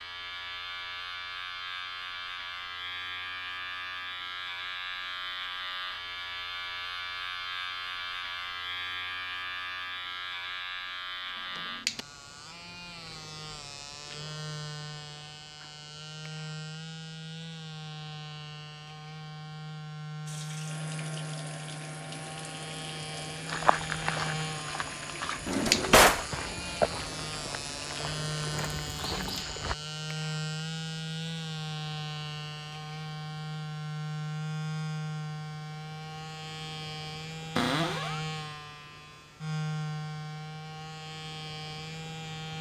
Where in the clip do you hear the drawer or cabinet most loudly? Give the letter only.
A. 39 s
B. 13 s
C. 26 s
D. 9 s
C.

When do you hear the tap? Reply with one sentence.
You can hear the tap from 20.2 to 29.4 s.